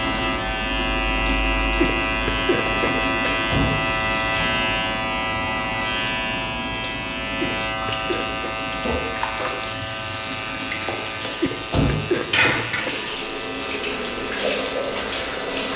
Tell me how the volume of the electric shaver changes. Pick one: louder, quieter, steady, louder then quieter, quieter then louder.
quieter.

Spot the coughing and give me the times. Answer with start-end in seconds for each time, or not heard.
1.8-3.5, 7.4-8.6, 11.4-13.1.